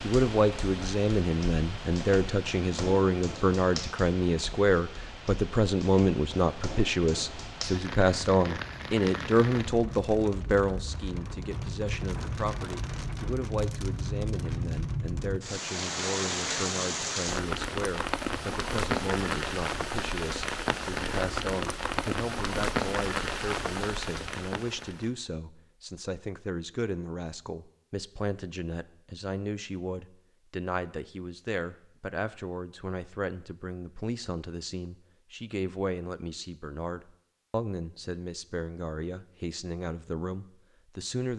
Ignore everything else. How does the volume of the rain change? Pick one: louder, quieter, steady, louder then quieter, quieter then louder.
louder.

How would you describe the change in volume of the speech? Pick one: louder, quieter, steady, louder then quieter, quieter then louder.
quieter.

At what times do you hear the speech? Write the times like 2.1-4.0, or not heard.
0.0-41.3.